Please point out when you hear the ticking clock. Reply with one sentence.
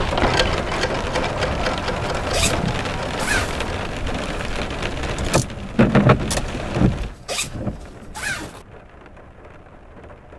The ticking clock can't be heard in this clip.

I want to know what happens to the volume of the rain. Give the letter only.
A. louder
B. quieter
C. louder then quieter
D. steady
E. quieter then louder
C.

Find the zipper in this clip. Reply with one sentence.
You can hear the zipper from 2.3 to 3.7 s and from 7.2 to 8.7 s.